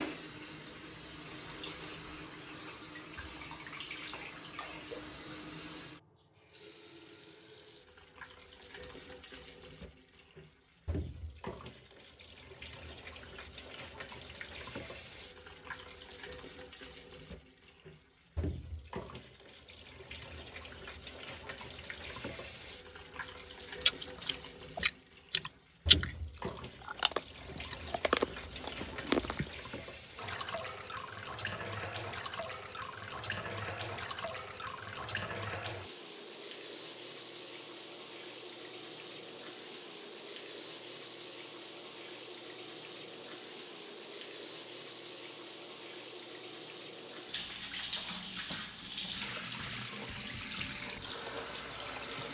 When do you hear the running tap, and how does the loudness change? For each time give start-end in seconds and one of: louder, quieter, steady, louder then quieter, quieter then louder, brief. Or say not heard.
0.0-52.2 louder.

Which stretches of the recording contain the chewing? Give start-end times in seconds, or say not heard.
23.9-26.1, 26.9-29.4.